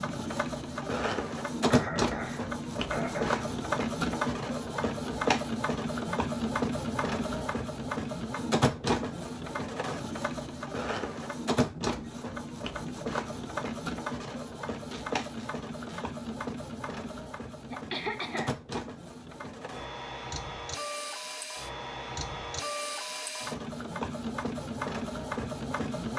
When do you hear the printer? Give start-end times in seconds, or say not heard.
0.0-26.1.